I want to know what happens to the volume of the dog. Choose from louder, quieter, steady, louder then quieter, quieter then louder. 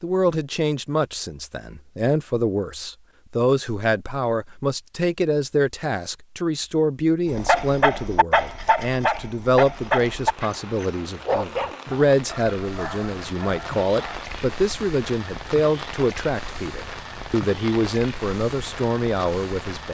quieter.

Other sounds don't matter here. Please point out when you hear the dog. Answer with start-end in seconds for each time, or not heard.
7.3-14.2.